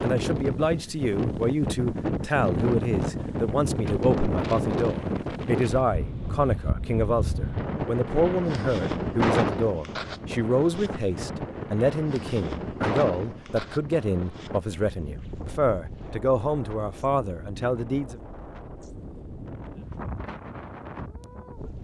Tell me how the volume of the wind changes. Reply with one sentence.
The volume of the wind goes down.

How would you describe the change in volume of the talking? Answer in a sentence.
The volume of the talking stays about the same.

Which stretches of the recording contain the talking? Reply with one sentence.
The talking can be heard from 0.0 to 18.2 s.